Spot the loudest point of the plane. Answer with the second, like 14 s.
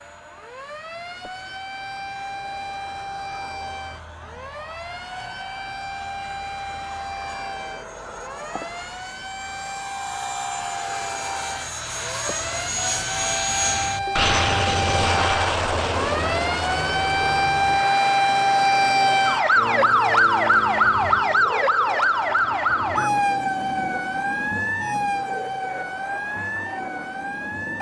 15 s.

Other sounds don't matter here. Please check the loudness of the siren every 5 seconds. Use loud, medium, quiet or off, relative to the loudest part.
quiet, quiet, medium, loud, loud, medium.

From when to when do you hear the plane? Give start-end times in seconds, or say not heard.
0.0-27.7.